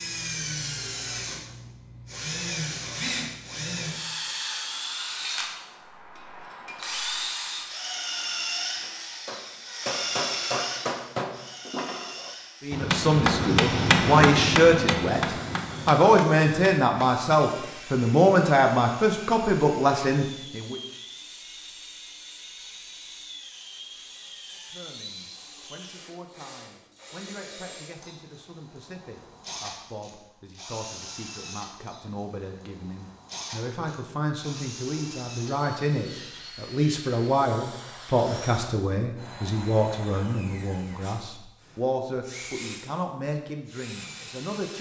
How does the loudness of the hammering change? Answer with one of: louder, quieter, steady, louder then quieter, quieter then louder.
louder then quieter.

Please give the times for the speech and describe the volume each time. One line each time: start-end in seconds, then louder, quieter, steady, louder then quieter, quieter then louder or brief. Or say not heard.
12.6-20.8 steady
24.6-44.7 louder then quieter.